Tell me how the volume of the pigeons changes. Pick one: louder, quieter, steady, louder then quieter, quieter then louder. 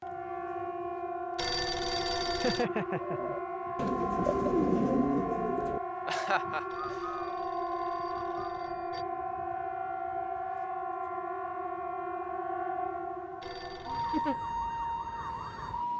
quieter.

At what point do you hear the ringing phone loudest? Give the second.
2 s.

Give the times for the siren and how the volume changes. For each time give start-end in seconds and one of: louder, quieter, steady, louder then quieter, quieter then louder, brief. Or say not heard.
0.0-15.9 steady.